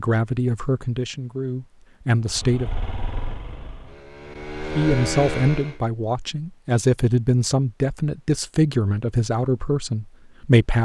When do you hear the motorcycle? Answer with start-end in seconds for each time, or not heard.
2.2-5.8.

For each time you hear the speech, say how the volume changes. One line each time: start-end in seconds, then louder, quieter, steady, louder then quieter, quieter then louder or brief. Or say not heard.
0.0-2.7 brief
4.8-10.8 steady.